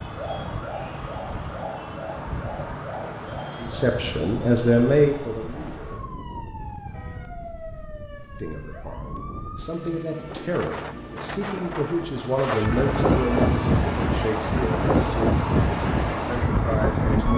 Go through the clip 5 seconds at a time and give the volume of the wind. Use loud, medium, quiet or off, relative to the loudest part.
quiet, quiet, loud, loud.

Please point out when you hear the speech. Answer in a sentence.
The speech can be heard from 3.6 to 6.0 s and from 8.4 to 17.3 s.